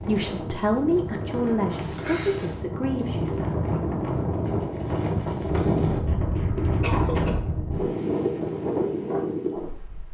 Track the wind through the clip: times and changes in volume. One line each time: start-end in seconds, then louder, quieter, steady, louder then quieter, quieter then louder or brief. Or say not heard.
0.0-10.0 louder.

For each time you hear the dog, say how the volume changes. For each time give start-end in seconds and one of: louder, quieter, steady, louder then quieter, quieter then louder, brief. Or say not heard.
not heard.